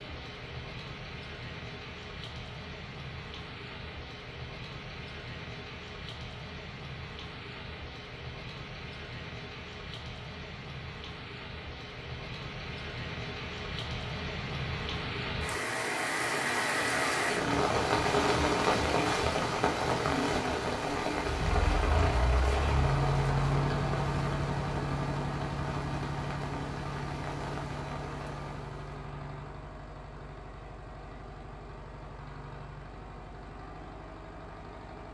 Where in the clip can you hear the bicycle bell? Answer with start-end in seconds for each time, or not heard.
not heard.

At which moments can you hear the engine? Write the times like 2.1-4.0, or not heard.
21.1-35.0.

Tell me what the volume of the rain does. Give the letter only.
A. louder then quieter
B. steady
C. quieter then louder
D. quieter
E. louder
A.